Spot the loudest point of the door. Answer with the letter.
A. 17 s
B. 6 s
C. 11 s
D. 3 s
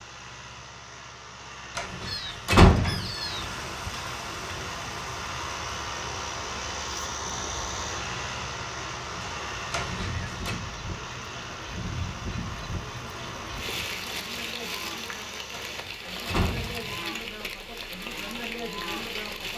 D.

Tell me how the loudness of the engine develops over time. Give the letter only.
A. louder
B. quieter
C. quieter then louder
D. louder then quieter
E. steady
D.